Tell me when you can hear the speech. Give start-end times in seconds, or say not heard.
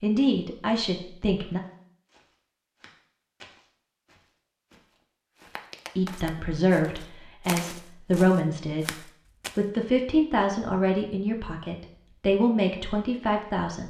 0.0-1.6, 6.0-13.8.